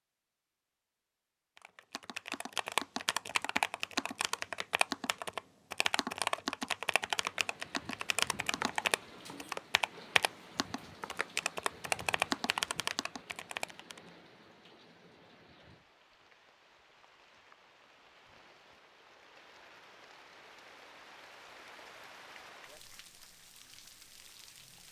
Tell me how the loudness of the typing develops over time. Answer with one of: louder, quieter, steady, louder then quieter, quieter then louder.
steady.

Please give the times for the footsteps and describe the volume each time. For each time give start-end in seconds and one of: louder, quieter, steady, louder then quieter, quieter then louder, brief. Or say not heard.
not heard.